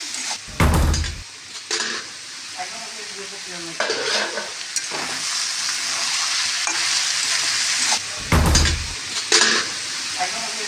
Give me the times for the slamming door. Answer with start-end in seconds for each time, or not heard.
0.5-1.2, 8.2-8.9.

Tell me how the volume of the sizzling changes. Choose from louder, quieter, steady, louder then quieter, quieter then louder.
louder.